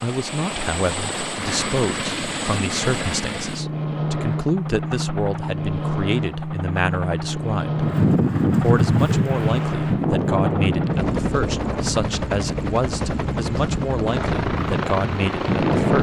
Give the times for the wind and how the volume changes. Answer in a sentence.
You can hear the wind from 7.7 to 15.9 s, getting quieter.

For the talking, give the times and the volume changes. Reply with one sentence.
The talking can be heard from 0.0 to 7.8 s, at a steady volume; and from 8.6 to 15.9 s, at a steady volume.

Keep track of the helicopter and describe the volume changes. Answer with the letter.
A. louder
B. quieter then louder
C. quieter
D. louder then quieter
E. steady
E.